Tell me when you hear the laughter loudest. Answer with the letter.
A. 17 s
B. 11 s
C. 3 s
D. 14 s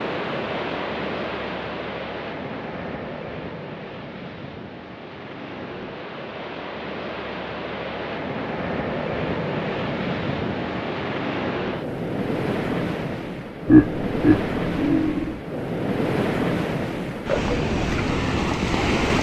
D.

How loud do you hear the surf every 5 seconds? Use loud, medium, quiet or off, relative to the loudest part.
medium, medium, loud, loud.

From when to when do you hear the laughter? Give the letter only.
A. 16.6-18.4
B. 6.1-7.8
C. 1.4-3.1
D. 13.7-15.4
D.